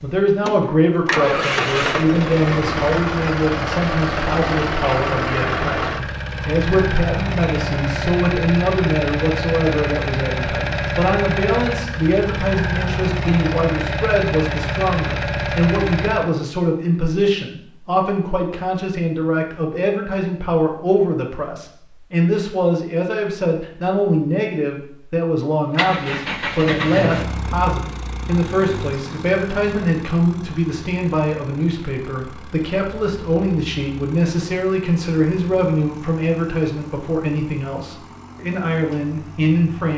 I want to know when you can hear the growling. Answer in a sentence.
The growling can't be heard in this clip.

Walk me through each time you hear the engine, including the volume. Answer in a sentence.
The engine can be heard from 0.0 to 16.3 s, at a steady volume; and from 25.7 to 39.9 s, getting quieter.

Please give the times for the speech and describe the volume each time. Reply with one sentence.
You can hear the speech from 0.0 to 39.9 s, at a steady volume.